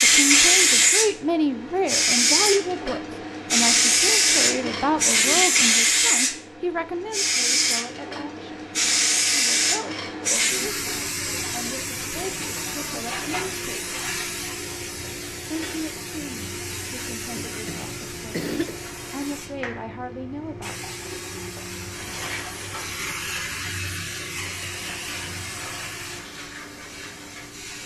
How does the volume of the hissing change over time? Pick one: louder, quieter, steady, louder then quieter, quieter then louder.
quieter.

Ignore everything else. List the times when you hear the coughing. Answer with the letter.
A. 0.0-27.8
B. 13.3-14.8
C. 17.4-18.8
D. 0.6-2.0
C.